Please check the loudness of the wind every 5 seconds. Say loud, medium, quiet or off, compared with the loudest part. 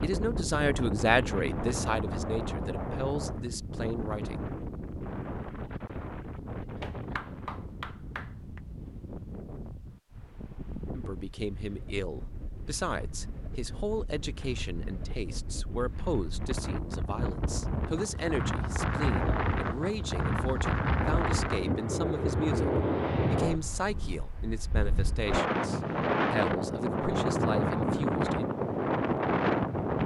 medium, quiet, quiet, medium, loud, loud.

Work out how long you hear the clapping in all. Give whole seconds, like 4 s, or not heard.
2 s.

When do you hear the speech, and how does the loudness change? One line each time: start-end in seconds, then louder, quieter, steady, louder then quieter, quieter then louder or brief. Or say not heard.
0.0-4.5 quieter
10.9-28.5 steady.